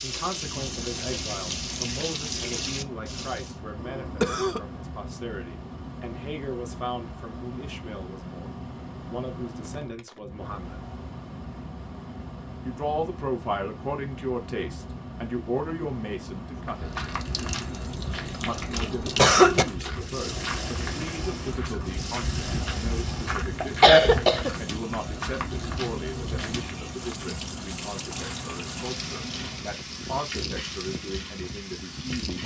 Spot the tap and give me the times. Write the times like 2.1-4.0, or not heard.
0.0-3.5, 16.9-32.4.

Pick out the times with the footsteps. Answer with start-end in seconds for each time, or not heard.
16.6-26.8.